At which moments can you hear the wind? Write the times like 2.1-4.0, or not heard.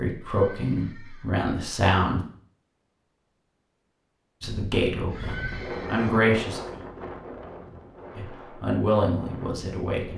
4.4-10.1.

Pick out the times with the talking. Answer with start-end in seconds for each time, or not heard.
0.0-2.2, 4.4-6.6, 8.2-10.1.